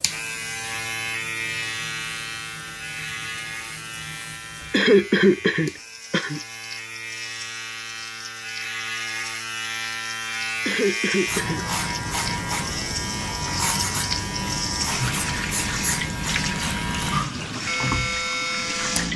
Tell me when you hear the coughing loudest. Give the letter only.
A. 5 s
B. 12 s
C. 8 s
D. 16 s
A.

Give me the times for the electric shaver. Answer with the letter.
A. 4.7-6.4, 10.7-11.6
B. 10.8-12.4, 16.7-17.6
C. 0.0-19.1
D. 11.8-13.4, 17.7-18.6
C.